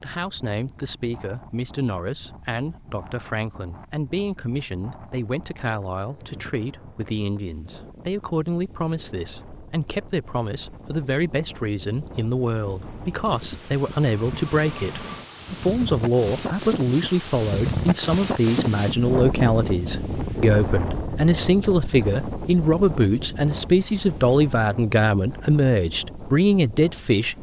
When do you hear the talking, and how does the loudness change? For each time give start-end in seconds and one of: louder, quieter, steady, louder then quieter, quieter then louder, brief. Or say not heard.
0.0-27.3 louder.